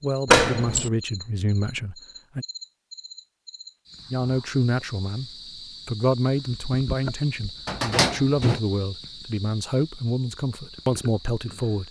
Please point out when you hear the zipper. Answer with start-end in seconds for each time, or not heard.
not heard.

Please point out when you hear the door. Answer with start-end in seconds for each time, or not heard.
0.2-0.9, 7.7-8.6.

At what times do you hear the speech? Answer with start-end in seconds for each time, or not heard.
0.0-2.5, 4.1-11.8.